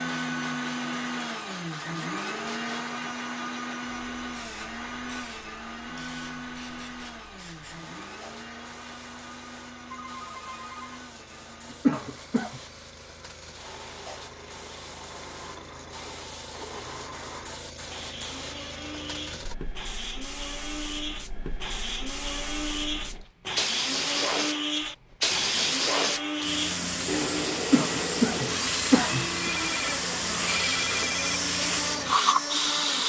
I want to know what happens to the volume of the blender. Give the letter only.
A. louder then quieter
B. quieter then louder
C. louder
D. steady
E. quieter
B.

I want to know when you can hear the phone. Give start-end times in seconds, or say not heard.
9.9-11.0, 29.4-31.4.